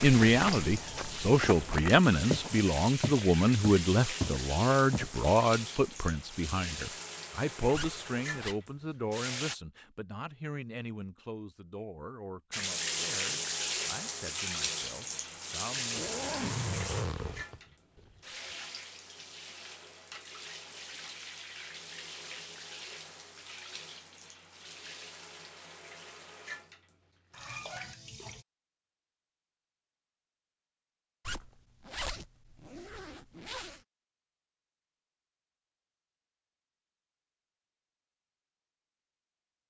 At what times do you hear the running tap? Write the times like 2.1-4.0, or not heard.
0.0-9.6, 12.5-28.4.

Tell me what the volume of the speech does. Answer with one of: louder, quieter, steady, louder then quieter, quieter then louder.
quieter.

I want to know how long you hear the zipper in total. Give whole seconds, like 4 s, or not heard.
6 s.